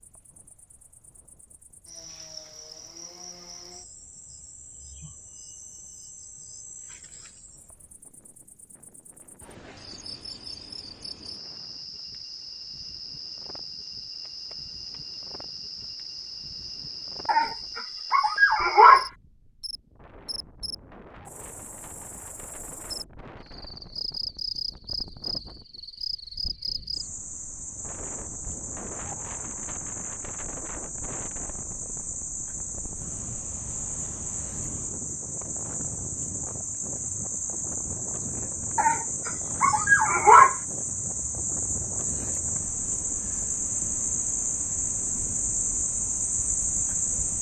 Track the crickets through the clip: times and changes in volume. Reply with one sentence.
You can hear the crickets from 0.0 to 47.3 s, getting louder.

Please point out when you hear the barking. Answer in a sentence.
The barking can be heard from 17.2 to 19.1 s and from 38.8 to 40.5 s.